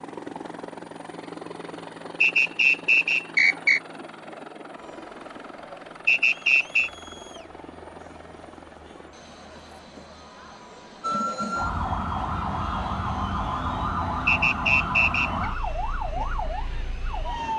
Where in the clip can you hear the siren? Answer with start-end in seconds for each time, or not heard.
11.0-17.5.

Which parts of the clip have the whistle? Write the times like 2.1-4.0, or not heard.
2.2-3.8, 6.0-6.9, 14.2-15.4.